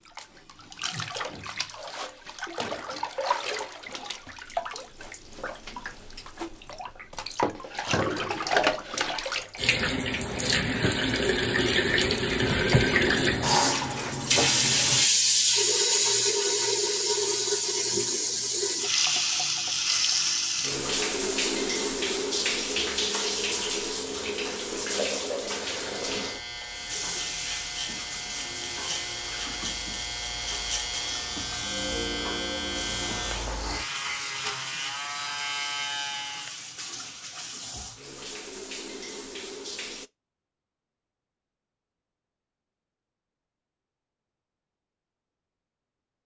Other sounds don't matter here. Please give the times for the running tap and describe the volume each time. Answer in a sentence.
You can hear the running tap from 0.0 to 40.1 s, getting louder then quieter.